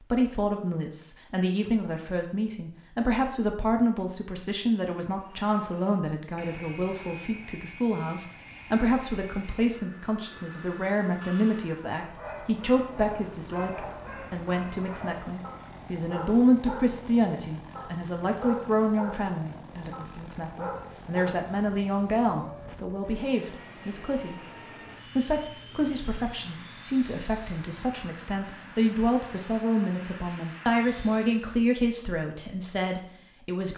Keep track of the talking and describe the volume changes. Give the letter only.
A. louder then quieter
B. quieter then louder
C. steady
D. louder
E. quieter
C.